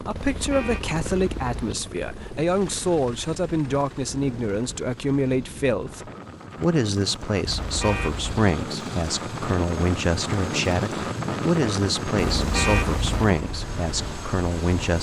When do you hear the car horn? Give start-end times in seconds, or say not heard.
0.1-1.8, 7.5-8.4, 12.3-13.3.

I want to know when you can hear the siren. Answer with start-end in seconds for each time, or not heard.
not heard.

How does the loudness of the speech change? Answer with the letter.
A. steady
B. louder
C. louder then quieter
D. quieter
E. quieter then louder
A.